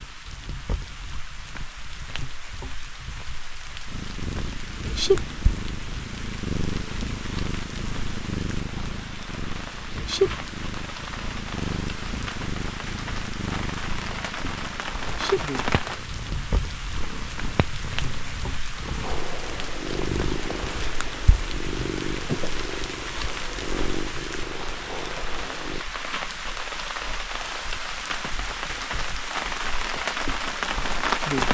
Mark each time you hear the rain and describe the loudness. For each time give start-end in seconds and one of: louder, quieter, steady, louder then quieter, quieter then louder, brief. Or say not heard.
0.0-31.4 louder.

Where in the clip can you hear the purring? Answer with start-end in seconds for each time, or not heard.
3.9-25.9.